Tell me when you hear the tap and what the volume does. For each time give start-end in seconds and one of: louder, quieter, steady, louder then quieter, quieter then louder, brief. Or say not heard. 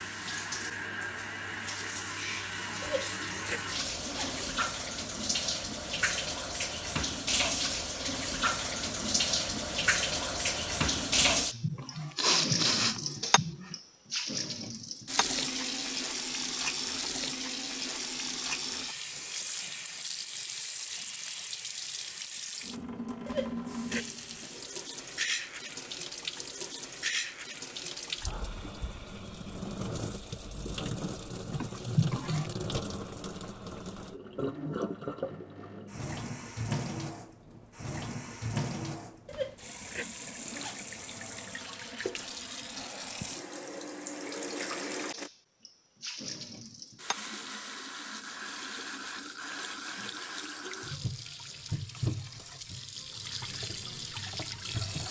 0.0-55.0 quieter.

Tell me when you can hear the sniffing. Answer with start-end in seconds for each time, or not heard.
11.2-13.8, 31.5-32.5.